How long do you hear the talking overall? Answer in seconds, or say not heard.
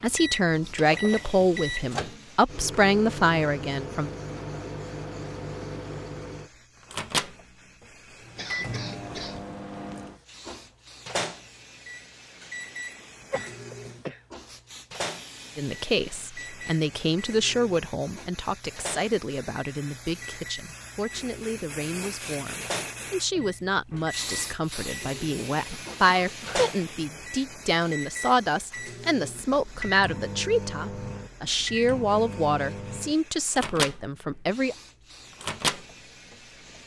23 s.